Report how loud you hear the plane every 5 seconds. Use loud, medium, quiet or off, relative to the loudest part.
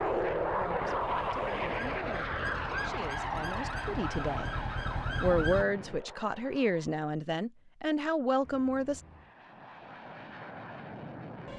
loud, quiet, medium.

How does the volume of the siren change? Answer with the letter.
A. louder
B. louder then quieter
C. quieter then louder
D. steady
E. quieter
A.